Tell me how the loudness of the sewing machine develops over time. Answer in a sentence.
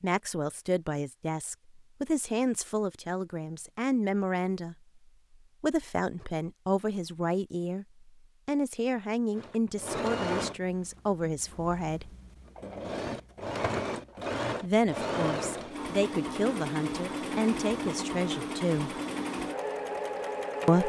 The volume of the sewing machine stays about the same.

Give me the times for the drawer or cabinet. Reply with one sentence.
The drawer or cabinet can't be heard in this clip.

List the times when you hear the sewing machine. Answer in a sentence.
You can hear the sewing machine from 9.3 to 20.8 s.